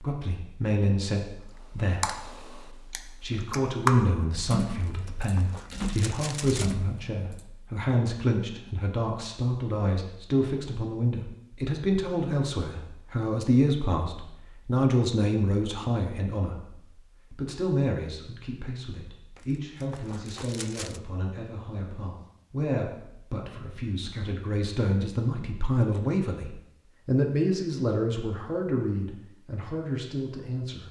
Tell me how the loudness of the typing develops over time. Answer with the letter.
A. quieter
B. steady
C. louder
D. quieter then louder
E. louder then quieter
E.